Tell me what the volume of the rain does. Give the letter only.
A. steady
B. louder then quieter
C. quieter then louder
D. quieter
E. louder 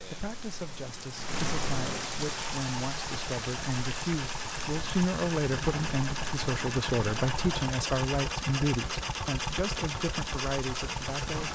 D.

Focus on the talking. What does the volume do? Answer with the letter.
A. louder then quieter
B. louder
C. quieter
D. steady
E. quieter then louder
A.